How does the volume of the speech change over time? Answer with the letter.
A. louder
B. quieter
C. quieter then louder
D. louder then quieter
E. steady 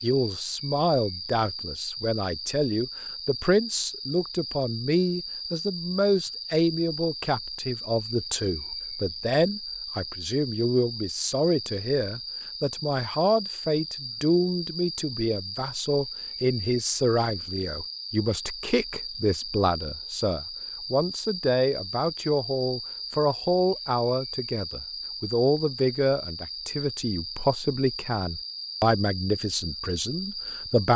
E.